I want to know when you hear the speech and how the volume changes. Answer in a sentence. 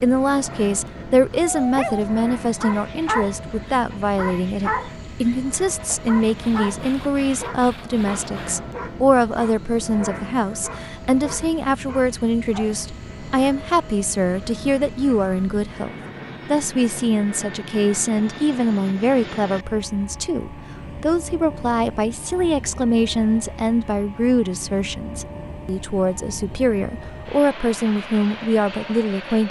You can hear the speech from 0.0 to 29.4 s, at a steady volume.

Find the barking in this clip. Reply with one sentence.
You can hear the barking from 1.4 to 12.8 s.